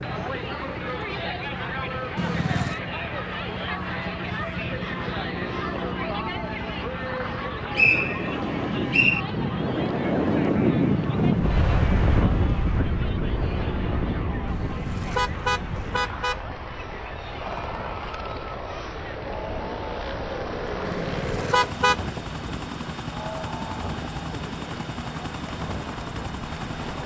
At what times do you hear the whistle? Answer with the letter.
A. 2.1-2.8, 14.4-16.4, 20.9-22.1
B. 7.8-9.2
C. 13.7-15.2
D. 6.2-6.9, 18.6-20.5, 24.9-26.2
B.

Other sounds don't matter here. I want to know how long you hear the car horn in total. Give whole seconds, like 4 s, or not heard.
4 s.